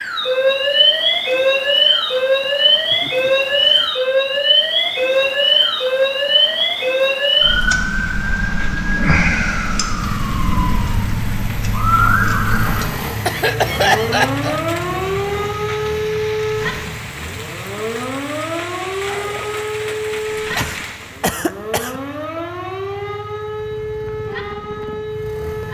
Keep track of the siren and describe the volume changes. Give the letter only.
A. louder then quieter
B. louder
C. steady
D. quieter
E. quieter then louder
D.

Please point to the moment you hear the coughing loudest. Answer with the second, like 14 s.
14 s.